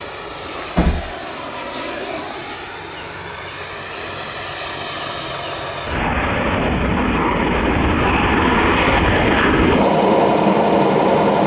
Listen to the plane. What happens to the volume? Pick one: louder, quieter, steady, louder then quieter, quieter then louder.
louder.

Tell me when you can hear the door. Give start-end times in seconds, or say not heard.
0.4-1.1.